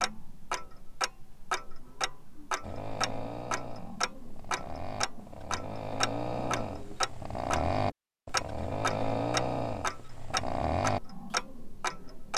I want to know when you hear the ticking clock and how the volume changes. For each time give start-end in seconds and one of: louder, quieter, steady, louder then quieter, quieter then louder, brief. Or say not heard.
0.0-12.3 steady.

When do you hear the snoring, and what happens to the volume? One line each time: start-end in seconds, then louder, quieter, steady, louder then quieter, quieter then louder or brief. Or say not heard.
2.6-11.3 louder.